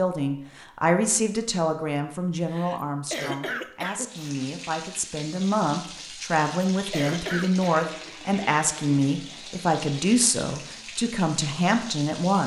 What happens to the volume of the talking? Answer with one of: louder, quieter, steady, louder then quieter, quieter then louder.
quieter then louder.